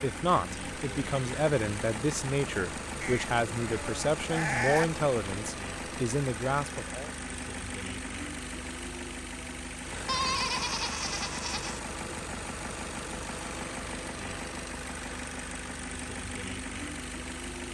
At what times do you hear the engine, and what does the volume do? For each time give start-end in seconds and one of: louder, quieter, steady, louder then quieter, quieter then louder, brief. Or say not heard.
0.0-17.7 steady.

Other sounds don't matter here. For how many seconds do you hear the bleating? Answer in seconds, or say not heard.
4 s.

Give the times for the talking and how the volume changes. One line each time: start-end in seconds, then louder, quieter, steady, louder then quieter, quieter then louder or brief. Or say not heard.
0.0-7.1 steady.